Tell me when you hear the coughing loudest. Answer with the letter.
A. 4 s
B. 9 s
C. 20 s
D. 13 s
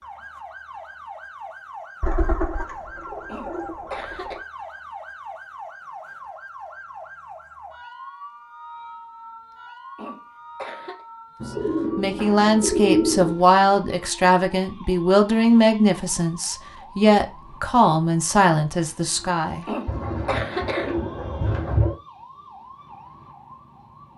C.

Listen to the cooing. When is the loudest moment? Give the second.
13 s.